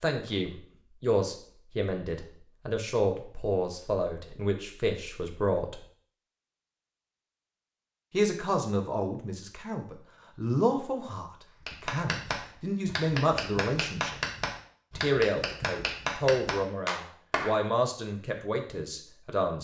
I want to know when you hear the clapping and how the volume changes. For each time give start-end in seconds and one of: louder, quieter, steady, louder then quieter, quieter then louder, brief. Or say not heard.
11.7-17.6 steady.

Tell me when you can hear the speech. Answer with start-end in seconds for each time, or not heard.
0.0-5.8, 8.1-14.2, 14.9-19.5.